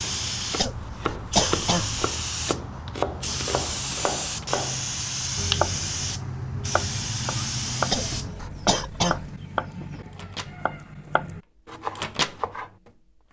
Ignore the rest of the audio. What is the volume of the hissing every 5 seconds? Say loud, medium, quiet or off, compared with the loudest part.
loud, loud, off.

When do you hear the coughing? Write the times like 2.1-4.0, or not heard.
0.6-2.0, 7.9-9.3.